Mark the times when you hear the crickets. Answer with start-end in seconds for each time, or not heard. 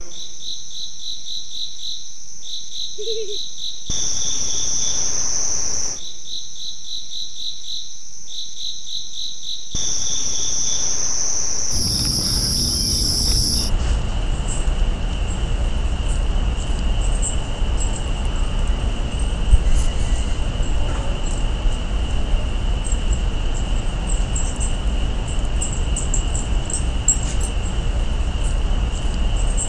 0.0-29.6.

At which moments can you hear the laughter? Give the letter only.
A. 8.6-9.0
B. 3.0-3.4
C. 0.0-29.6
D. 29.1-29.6
B.